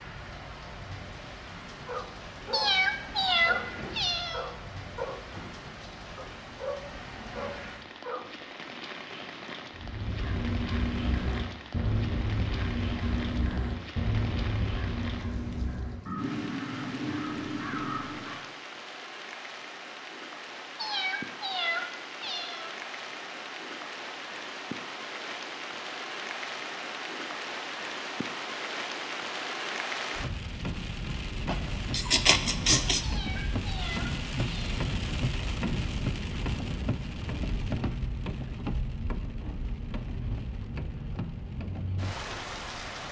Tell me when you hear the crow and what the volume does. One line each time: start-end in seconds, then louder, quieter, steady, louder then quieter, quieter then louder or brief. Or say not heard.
9.7-18.4 steady.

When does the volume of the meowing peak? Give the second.
3 s.